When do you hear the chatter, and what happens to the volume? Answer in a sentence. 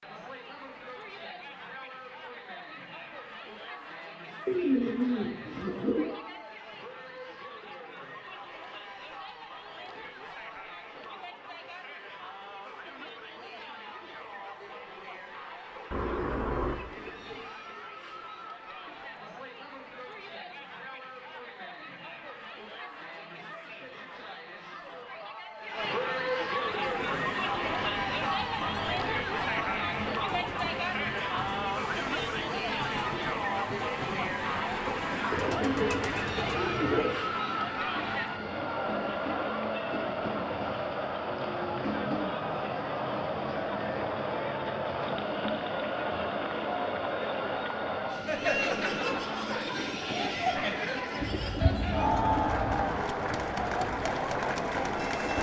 You can hear the chatter from 0.0 to 55.3 s, getting louder.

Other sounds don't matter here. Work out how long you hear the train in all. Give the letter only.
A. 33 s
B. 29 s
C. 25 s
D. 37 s
B.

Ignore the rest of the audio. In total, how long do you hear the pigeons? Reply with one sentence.
The pigeons can be heard for 7 seconds in total.